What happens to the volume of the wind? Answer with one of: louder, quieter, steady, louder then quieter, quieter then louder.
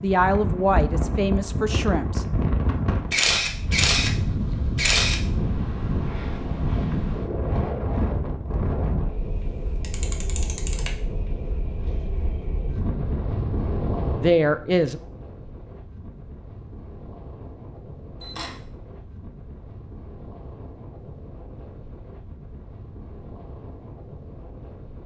quieter.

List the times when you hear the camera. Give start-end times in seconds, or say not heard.
3.1-4.1, 4.8-5.2, 9.3-11.0, 18.2-18.6.